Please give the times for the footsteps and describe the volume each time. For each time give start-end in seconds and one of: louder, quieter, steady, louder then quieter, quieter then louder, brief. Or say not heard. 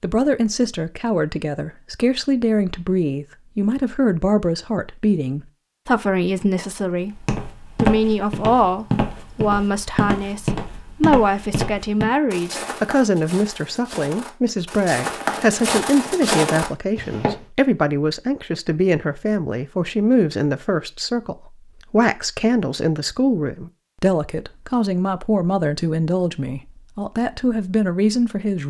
7.1-17.4 quieter then louder.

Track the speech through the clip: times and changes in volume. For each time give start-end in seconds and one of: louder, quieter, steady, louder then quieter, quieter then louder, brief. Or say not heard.
0.0-28.6 steady.